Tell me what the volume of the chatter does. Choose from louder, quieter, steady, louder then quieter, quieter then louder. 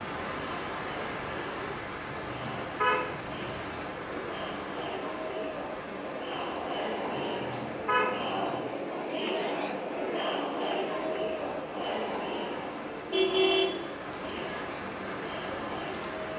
louder then quieter.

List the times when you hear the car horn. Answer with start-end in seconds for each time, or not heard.
2.0-3.5, 7.2-8.6, 13.1-13.8.